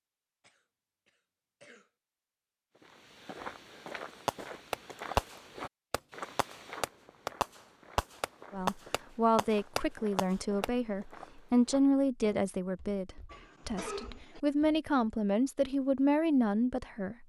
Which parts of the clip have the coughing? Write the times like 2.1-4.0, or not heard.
0.4-1.9, 13.2-14.4.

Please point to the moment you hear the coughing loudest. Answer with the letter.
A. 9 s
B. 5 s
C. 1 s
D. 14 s
D.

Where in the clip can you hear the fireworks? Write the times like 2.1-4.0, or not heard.
4.2-10.7.